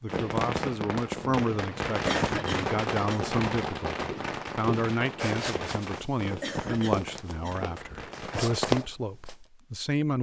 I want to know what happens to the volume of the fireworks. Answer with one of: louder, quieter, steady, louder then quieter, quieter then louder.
quieter.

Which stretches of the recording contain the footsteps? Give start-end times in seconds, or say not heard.
4.0-9.3.